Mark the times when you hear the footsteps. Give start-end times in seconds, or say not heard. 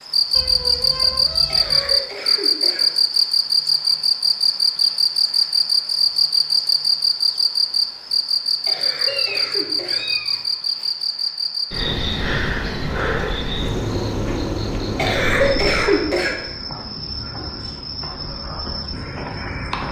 not heard.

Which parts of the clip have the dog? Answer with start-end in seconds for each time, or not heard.
not heard.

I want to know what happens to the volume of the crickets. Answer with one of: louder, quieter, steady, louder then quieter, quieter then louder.
quieter.